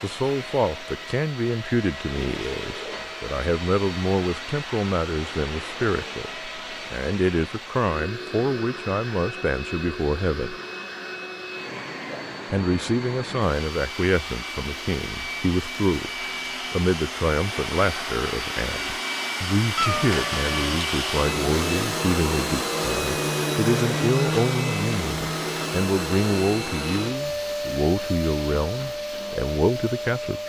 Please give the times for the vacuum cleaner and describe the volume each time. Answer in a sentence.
The vacuum cleaner can be heard from 0.0 to 30.4 s, getting louder.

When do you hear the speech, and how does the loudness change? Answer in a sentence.
The speech can be heard from 0.0 to 10.6 s, at a steady volume; and from 12.5 to 30.4 s, at a steady volume.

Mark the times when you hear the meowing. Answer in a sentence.
The meowing can be heard from 19.8 to 20.8 s.